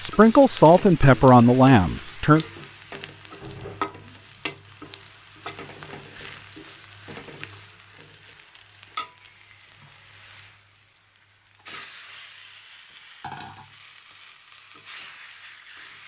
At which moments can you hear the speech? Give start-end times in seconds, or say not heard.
0.0-2.5.